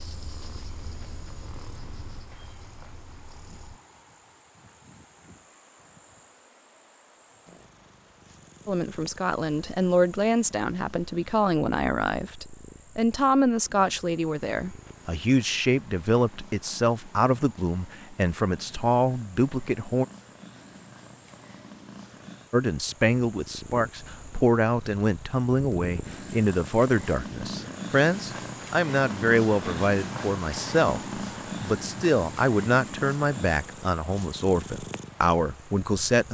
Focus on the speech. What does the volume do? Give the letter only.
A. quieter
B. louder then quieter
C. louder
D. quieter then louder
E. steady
E.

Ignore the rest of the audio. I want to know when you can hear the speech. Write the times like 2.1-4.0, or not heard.
8.7-20.1, 22.5-36.2.